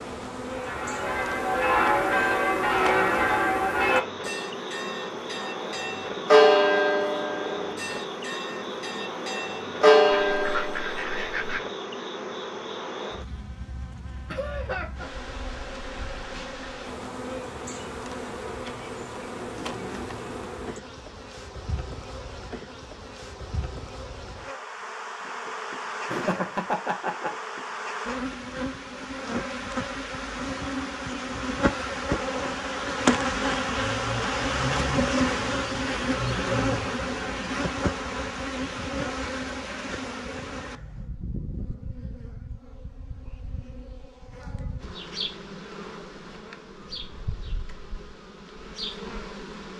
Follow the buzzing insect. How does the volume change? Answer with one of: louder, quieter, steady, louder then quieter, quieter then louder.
louder then quieter.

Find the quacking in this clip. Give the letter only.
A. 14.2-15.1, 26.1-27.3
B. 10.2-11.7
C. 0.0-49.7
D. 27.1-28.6
B.